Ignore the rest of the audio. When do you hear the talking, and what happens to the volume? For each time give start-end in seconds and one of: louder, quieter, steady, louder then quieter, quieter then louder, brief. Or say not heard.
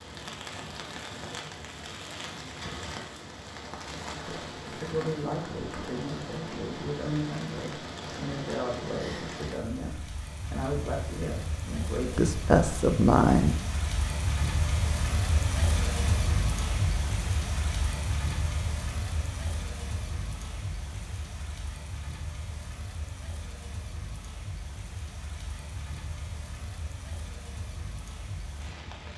4.2-13.5 louder.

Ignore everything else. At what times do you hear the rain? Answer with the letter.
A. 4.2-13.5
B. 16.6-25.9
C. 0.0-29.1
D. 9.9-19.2
C.